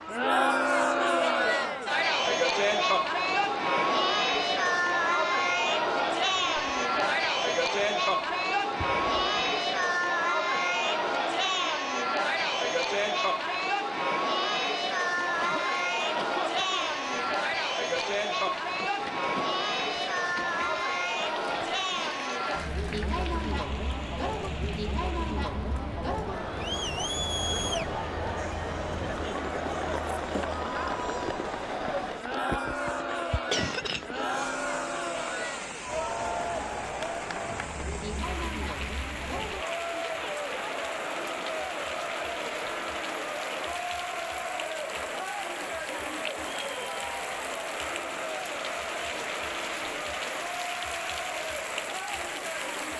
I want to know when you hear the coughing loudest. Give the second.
34 s.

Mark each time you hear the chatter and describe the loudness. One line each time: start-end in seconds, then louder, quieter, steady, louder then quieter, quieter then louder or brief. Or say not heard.
0.0-52.9 quieter.